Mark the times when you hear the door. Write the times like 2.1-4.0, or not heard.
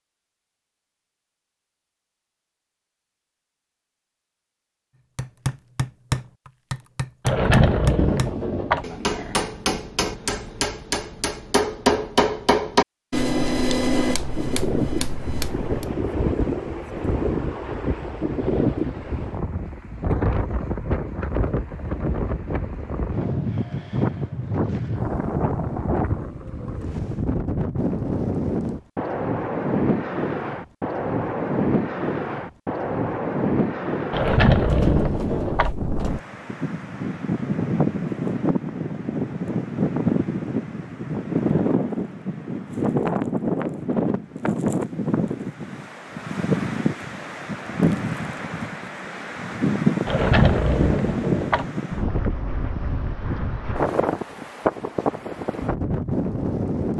7.2-8.8, 34.1-35.8, 50.0-51.6.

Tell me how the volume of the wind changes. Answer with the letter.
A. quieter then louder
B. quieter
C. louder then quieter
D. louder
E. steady
E.